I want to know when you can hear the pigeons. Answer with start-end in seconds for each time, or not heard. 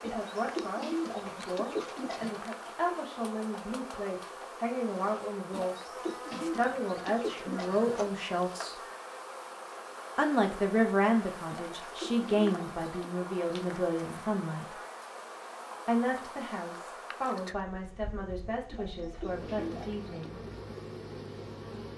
0.0-2.4, 5.5-8.1, 11.4-13.2, 18.7-20.3.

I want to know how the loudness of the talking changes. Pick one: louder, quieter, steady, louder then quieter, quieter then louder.
louder then quieter.